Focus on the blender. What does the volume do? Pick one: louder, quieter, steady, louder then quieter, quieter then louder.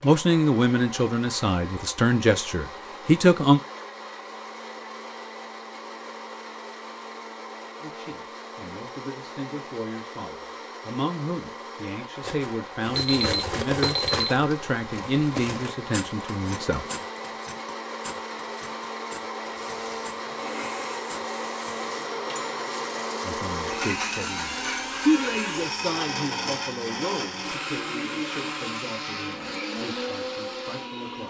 louder.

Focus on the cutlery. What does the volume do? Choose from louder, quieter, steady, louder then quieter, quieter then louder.
quieter.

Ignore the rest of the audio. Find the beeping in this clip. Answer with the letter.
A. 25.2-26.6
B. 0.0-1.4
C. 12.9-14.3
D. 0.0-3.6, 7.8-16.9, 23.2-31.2
C.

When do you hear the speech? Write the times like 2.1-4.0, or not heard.
0.0-3.6, 7.8-16.9, 23.2-31.2.